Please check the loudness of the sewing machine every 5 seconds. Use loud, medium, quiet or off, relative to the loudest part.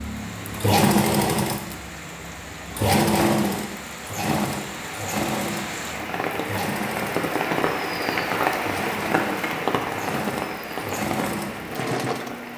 loud, medium, medium.